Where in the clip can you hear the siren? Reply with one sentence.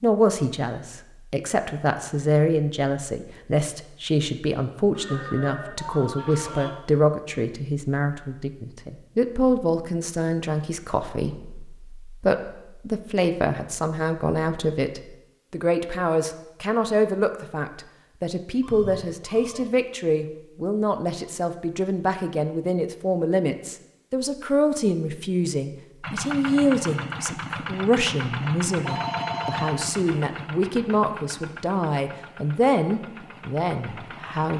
The siren can't be heard in this clip.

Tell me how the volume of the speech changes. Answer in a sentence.
The loudness of the speech stays about the same.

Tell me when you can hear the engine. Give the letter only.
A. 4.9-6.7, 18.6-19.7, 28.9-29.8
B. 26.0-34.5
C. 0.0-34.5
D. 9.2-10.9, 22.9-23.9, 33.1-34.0
B.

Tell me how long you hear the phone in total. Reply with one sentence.
The phone can be heard for 4 seconds in total.